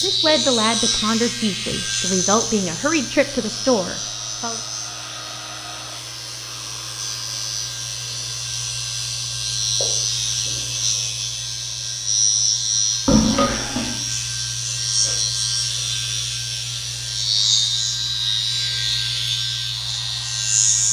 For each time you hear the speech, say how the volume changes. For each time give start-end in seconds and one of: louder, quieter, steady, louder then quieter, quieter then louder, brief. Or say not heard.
0.0-4.6 steady.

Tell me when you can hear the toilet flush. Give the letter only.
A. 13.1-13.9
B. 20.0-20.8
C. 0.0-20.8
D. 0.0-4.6
A.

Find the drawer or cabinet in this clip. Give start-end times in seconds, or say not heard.
not heard.